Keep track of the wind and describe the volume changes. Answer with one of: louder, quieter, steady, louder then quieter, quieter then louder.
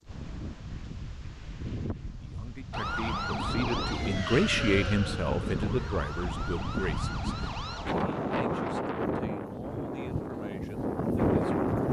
louder.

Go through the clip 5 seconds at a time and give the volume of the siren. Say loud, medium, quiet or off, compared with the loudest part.
loud, medium, off.